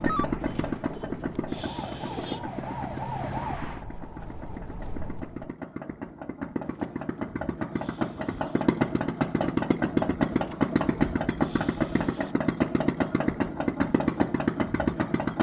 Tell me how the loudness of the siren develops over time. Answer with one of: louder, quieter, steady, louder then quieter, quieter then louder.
louder then quieter.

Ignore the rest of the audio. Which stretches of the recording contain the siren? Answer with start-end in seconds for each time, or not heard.
0.0-5.5.